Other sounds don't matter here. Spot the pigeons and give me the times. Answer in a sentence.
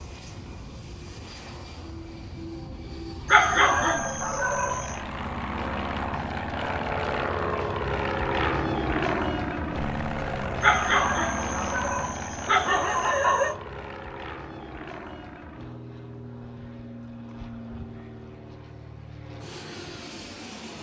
The pigeons can't be heard in this clip.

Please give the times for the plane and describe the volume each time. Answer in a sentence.
The plane can be heard from 0.0 to 20.7 s, getting louder then quieter.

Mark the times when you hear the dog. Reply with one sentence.
The dog can be heard from 3.2 to 5.0 s and from 10.6 to 13.6 s.